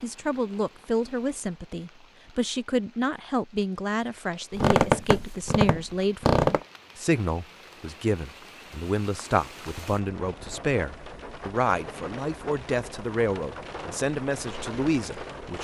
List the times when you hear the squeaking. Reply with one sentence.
You can hear the squeaking from 4.5 to 6.7 s.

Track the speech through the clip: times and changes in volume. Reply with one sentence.
You can hear the speech from 0.0 to 15.6 s, at a steady volume.